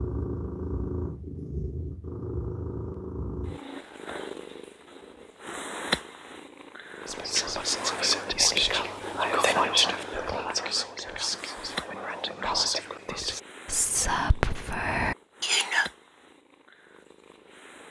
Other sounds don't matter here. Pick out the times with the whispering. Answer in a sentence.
You can hear the whispering from 7.0 to 15.9 s.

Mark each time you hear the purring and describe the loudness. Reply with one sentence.
You can hear the purring from 0.0 to 17.8 s, getting quieter.